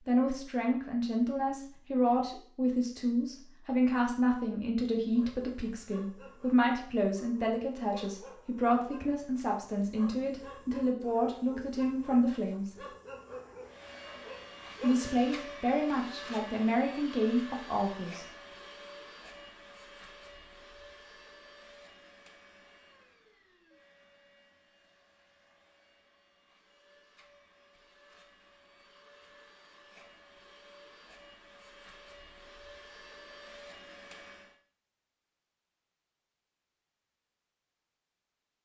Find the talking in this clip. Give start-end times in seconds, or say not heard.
0.1-12.8, 14.8-18.2.